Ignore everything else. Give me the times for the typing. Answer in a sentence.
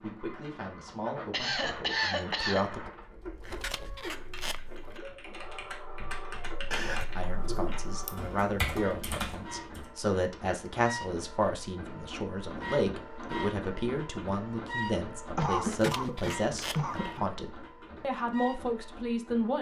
The typing can be heard from 3.0 to 9.9 s.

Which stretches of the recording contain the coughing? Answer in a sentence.
The coughing can be heard from 1.3 to 2.6 s, from 6.7 to 7.8 s and from 15.3 to 17.2 s.